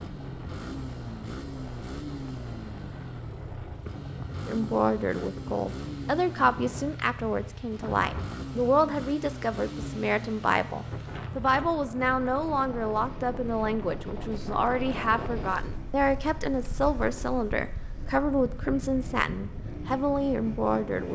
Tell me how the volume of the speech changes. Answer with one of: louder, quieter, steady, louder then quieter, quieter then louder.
steady.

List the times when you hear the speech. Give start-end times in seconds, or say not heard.
4.5-21.0.